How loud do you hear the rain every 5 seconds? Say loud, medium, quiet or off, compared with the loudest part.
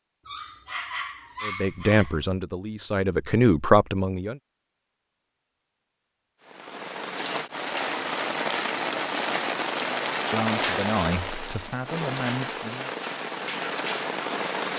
off, loud, loud.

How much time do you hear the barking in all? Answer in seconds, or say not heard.
2 s.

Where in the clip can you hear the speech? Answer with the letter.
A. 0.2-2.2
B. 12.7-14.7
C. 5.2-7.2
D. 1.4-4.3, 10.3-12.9
D.